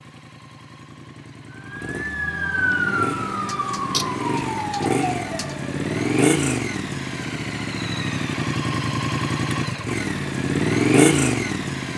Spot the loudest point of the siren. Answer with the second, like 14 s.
3 s.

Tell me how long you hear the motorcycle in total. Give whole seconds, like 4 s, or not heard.
12 s.